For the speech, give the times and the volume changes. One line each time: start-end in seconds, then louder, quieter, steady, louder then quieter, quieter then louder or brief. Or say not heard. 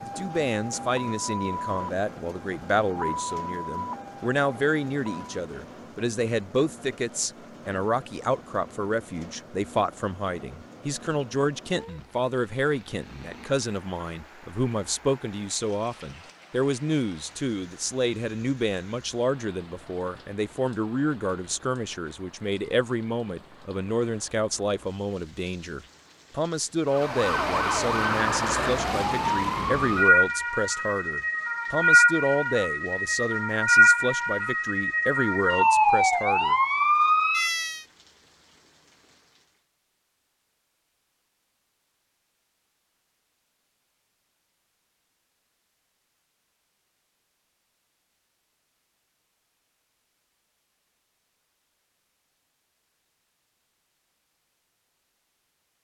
0.1-36.5 steady.